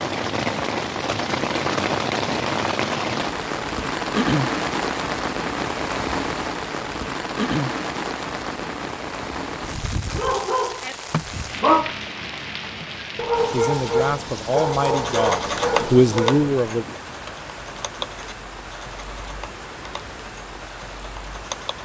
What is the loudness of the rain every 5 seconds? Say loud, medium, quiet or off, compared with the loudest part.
loud, loud, medium, quiet, quiet.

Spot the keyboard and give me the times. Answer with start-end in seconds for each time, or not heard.
14.8-21.8.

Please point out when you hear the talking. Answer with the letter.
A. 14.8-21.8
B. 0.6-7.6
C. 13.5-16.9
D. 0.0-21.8
C.